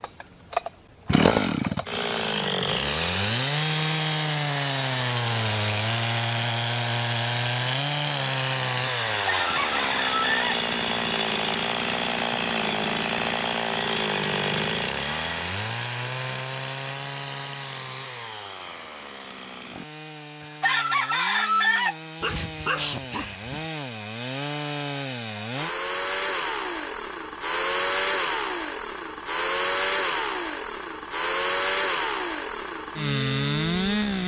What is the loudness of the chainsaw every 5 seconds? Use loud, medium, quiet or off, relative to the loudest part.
loud, loud, loud, medium, medium, loud, loud.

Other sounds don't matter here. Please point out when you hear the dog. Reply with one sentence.
You can hear the dog from 22.2 to 23.6 s.